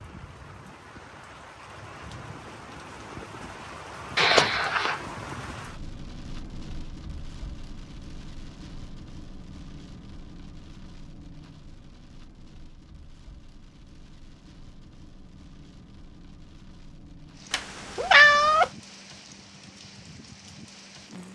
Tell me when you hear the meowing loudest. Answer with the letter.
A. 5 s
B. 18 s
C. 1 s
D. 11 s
B.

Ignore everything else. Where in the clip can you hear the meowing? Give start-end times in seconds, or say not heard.
4.2-5.0, 17.5-18.7.